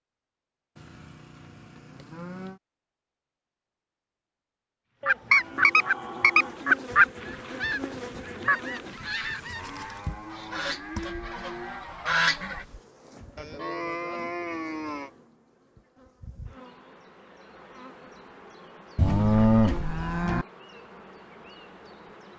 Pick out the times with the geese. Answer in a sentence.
You can hear the geese from 5.0 to 12.7 s.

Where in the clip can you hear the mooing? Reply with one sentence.
The mooing can be heard from 0.8 to 2.6 s, from 5.0 to 6.8 s, from 9.3 to 11.8 s, from 13.3 to 15.1 s and from 18.9 to 20.4 s.